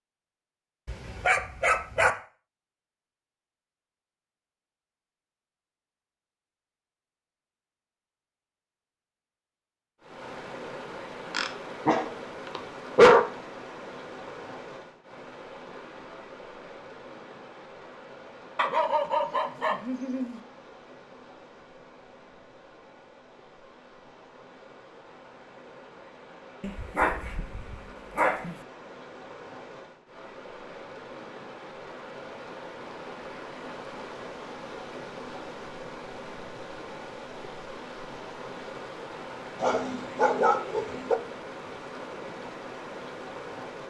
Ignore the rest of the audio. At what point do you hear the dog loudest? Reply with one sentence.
The loudest moment of the dog is at 13 seconds.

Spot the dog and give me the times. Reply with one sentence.
You can hear the dog from 0.8 to 2.1 s, from 11.3 to 13.2 s, from 18.6 to 20.4 s, from 26.6 to 28.6 s and from 39.6 to 41.1 s.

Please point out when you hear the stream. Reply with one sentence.
The stream can be heard from 10.0 to 43.8 s.